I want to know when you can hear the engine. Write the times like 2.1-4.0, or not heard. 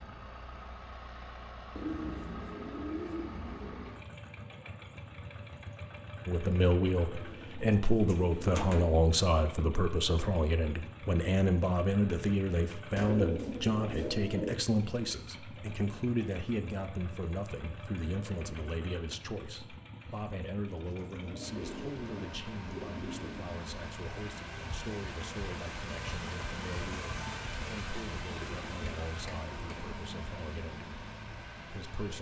0.0-32.1.